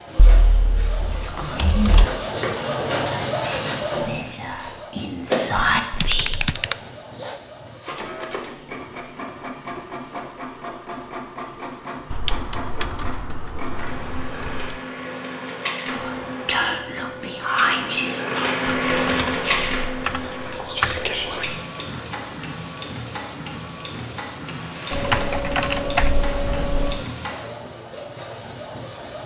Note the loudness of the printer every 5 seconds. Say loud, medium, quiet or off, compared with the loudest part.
loud, medium, medium, loud, medium, medium.